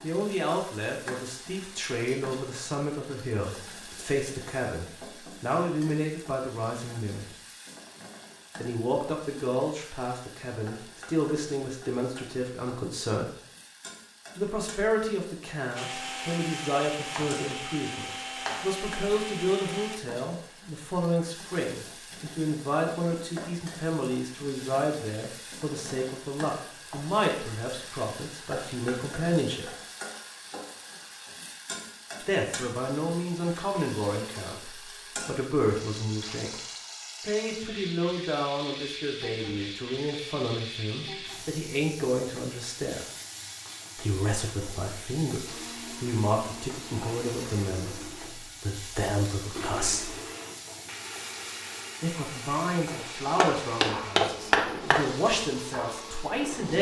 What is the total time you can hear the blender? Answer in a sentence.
You can hear the blender for 15 seconds altogether.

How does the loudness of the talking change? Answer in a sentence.
The volume of the talking stays about the same.